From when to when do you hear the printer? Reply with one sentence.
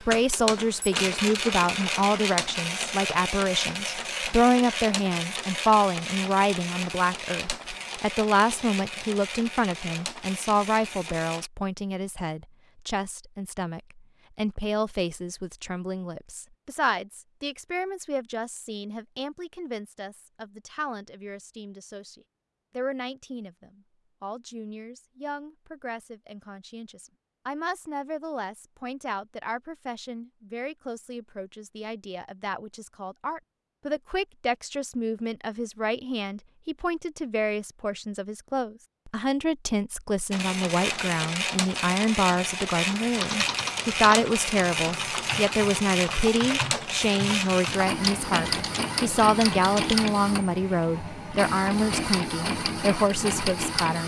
The printer can be heard from 0.0 to 11.5 s and from 40.3 to 54.0 s.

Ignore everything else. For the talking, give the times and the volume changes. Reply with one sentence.
You can hear the talking from 0.1 to 54.0 s, getting quieter then louder.